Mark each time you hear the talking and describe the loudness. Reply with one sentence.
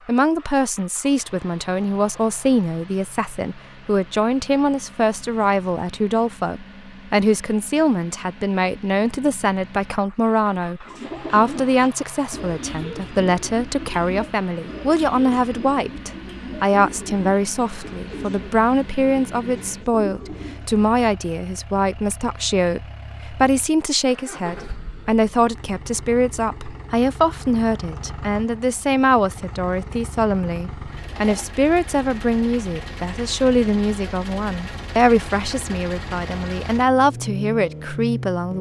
You can hear the talking from 0.1 to 38.5 s, at a steady volume.